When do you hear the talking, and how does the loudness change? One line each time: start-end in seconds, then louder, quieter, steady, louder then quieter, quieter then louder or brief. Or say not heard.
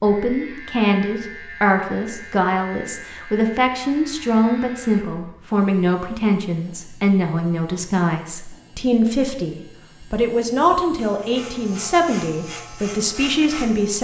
0.0-13.9 steady.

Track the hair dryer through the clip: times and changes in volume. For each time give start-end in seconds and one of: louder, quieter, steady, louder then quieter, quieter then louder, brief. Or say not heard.
not heard.